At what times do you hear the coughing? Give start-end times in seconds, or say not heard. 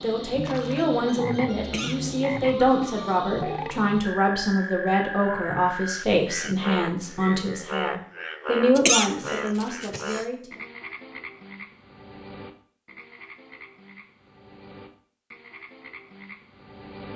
1.6-3.2, 8.8-10.2.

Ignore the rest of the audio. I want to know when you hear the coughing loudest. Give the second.
9 s.